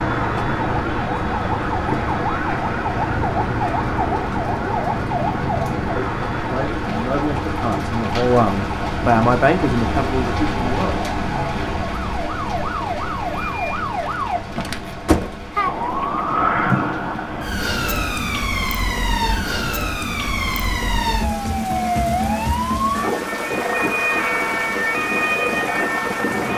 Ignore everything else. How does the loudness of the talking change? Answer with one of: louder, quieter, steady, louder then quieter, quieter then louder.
louder then quieter.